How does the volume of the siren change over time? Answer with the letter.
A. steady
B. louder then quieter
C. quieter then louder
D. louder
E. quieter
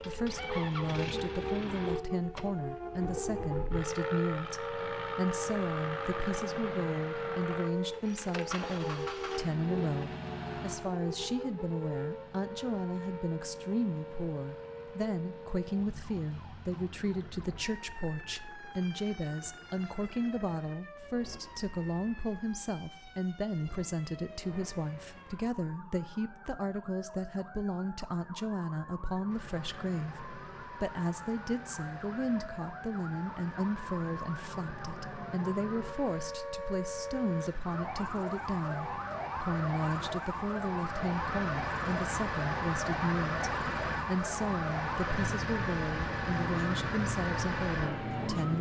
C.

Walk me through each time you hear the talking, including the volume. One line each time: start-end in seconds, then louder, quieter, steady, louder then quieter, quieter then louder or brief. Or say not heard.
0.0-48.5 steady.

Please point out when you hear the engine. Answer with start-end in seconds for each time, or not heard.
0.0-25.5, 29.3-48.5.